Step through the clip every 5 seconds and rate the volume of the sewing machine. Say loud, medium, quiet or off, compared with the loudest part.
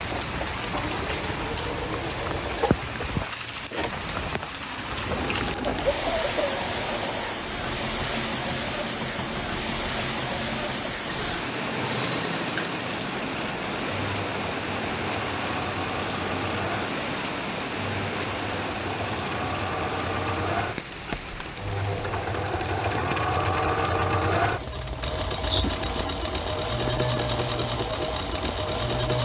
medium, medium, medium, medium, loud, loud.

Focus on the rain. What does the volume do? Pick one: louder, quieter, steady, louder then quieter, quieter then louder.
quieter.